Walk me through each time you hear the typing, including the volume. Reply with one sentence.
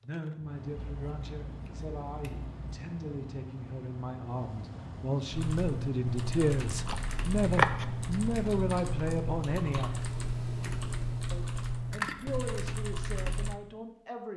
The typing can be heard from 5.3 to 13.6 s, at a steady volume.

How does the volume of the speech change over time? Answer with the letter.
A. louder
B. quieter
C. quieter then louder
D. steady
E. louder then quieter
E.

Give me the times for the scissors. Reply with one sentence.
The scissors can be heard from 0.8 to 2.8 s, from 6.8 to 7.9 s and from 11.9 to 12.6 s.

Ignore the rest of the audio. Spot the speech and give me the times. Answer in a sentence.
You can hear the speech from 0.0 to 10.1 s and from 11.3 to 14.3 s.